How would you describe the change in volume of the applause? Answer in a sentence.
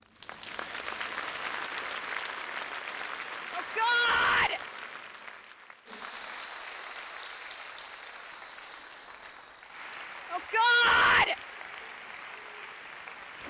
The loudness of the applause goes down.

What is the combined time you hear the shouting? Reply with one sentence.
The shouting can be heard for 2 seconds in total.